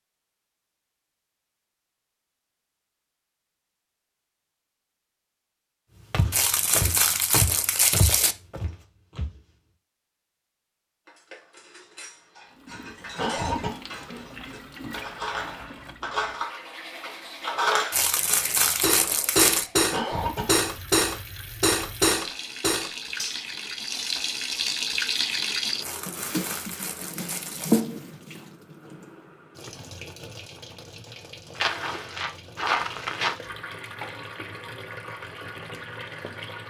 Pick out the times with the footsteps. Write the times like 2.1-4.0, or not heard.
6.1-9.4, 31.6-33.4.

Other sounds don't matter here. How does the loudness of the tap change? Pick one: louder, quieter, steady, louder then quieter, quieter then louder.
louder then quieter.